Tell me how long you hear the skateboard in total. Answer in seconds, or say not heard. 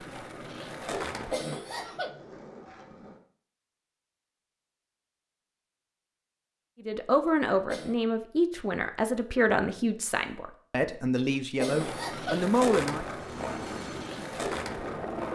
7 s.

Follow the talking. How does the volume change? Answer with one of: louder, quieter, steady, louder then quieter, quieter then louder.
steady.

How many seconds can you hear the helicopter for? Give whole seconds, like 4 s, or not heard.
2 s.